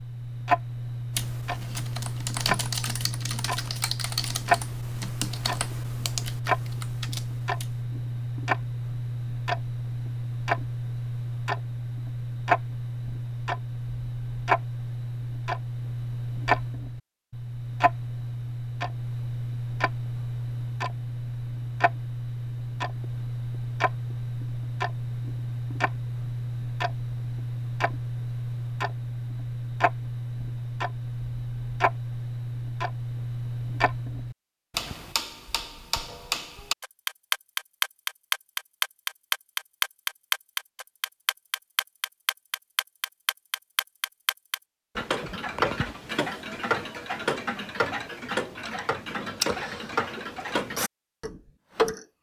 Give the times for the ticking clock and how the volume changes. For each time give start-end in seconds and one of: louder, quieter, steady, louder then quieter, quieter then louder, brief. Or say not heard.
0.0-52.0 steady.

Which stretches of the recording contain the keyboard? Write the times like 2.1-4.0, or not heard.
1.1-7.8.